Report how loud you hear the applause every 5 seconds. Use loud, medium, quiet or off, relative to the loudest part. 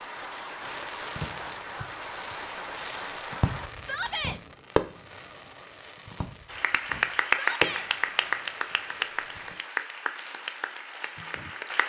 medium, loud, medium.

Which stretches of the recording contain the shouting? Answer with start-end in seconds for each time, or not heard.
3.8-4.4, 7.3-7.9.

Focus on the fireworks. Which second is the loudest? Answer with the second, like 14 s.
5 s.